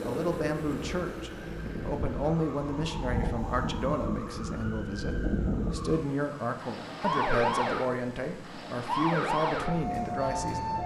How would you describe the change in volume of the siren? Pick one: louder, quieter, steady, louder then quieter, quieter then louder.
louder.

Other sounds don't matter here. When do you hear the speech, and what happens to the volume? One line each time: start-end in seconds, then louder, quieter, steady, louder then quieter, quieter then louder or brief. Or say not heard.
0.1-10.8 steady.